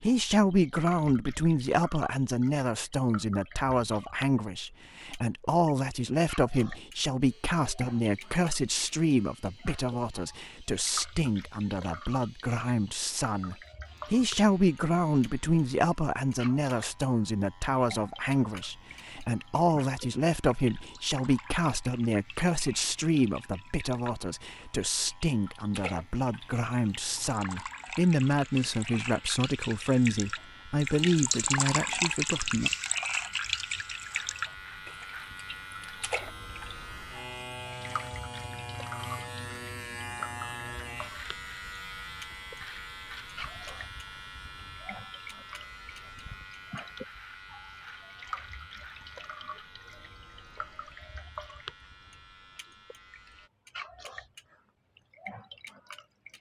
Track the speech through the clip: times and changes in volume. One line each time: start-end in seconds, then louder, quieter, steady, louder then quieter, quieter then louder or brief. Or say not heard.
0.0-32.7 steady.